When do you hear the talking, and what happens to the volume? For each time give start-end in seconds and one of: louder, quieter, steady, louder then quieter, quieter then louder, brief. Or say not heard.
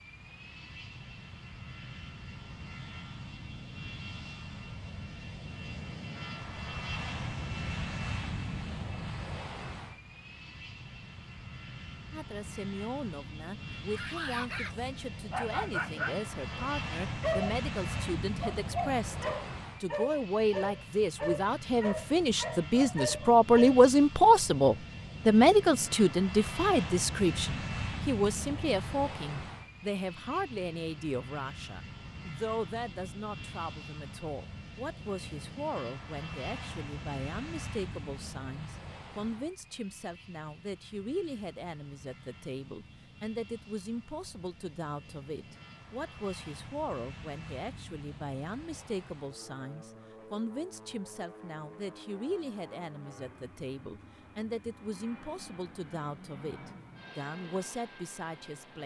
12.1-58.8 louder then quieter.